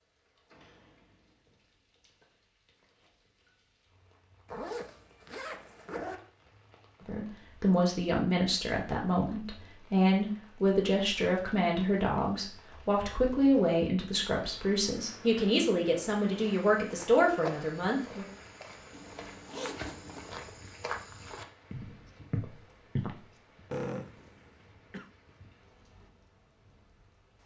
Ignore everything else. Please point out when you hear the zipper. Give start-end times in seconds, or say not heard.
4.5-6.2, 18.9-20.3.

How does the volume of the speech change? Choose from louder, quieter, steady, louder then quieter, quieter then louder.
steady.